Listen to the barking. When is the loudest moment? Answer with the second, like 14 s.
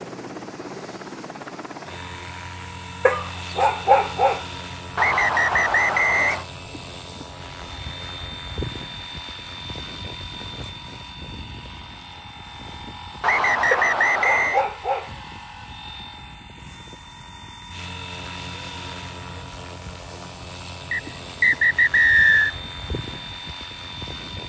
4 s.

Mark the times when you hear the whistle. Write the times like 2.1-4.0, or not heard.
5.0-6.5, 13.2-14.7, 20.9-22.5.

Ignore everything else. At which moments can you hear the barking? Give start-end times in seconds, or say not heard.
3.0-4.5, 13.7-15.1.